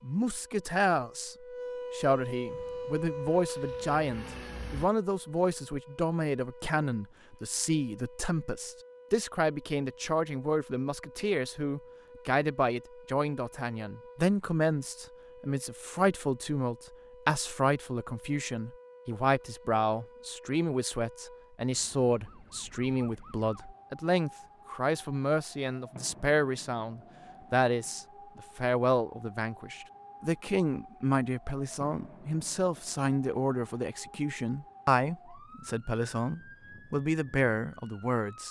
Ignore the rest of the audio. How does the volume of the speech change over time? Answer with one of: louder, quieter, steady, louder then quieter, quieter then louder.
steady.